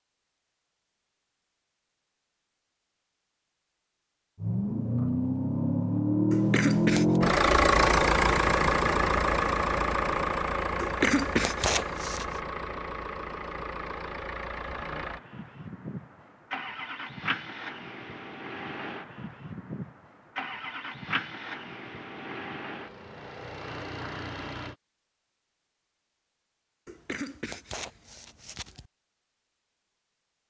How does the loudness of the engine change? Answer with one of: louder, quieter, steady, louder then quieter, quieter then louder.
quieter.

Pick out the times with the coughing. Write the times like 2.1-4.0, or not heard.
6.3-7.2, 10.8-12.2, 26.9-28.9.